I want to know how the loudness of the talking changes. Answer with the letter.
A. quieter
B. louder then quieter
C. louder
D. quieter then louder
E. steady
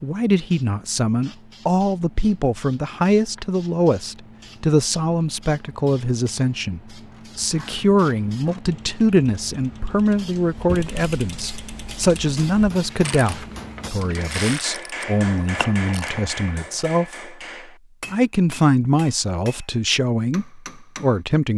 E.